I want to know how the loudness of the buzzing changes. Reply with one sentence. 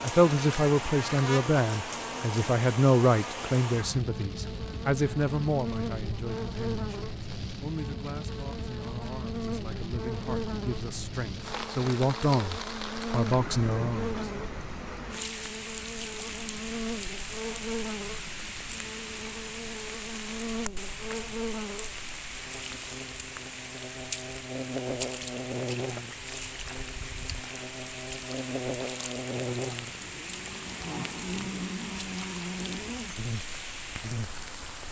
The volume of the buzzing stays about the same.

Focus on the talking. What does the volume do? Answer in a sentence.
The volume of the talking goes down, then up.